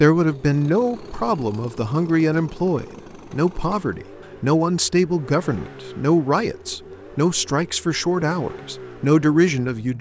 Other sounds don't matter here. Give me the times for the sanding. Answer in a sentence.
You can't hear the sanding here.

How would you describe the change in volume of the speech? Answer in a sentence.
The volume of the speech stays about the same.